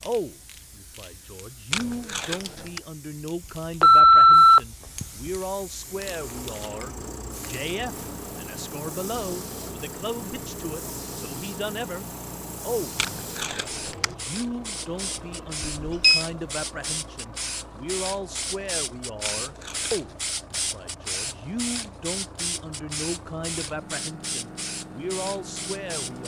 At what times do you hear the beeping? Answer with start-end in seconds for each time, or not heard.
3.8-5.0, 15.6-16.2.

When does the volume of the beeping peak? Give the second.
4 s.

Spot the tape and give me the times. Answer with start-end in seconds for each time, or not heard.
1.7-2.8, 12.9-14.2, 19.2-20.1.